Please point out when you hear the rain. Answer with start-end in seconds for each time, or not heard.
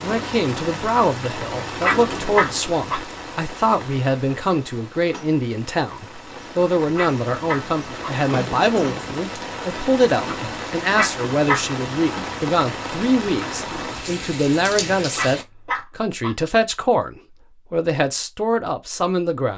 0.0-15.4.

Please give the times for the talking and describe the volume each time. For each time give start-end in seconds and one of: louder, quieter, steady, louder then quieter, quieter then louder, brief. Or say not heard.
0.0-19.5 steady.